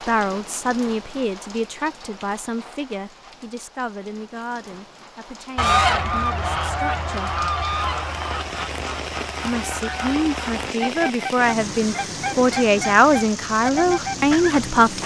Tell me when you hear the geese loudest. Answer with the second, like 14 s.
6 s.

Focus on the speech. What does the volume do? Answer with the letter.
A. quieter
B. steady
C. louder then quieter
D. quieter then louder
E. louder
D.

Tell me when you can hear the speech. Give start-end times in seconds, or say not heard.
0.1-7.5, 9.4-15.0.